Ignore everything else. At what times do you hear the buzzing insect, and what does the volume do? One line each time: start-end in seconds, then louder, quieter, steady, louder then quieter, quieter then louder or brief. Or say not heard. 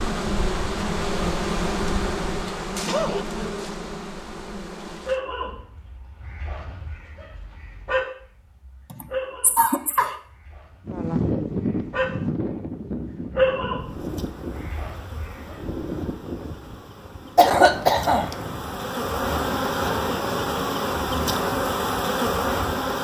0.0-5.2 quieter
13.8-22.9 louder.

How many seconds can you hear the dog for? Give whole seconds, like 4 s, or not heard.
11 s.